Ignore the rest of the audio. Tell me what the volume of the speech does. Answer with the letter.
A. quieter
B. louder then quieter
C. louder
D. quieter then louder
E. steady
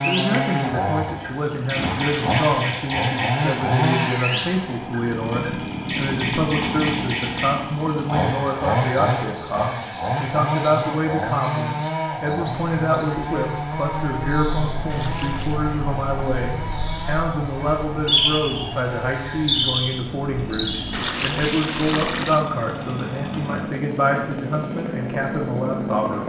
E.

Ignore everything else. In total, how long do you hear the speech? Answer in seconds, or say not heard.
26 s.